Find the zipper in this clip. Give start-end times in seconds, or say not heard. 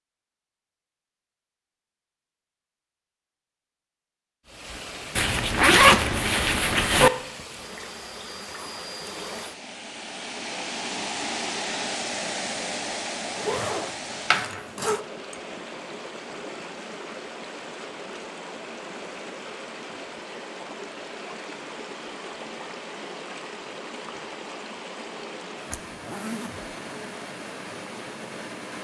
5.2-7.1, 13.3-15.0, 25.7-26.7.